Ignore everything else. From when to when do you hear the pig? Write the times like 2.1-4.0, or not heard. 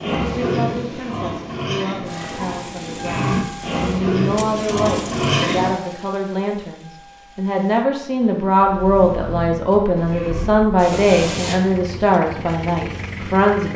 0.0-5.7, 9.9-11.6.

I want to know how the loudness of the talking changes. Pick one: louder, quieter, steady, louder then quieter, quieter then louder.
louder.